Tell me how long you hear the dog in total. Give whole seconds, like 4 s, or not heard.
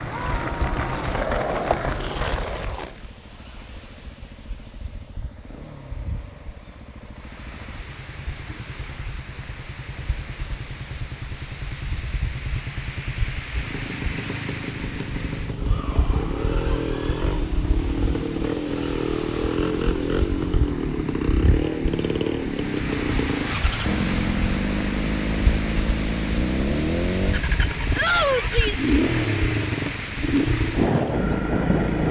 not heard.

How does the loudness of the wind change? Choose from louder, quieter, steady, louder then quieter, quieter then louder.
louder.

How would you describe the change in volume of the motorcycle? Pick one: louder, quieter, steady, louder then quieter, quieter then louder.
louder.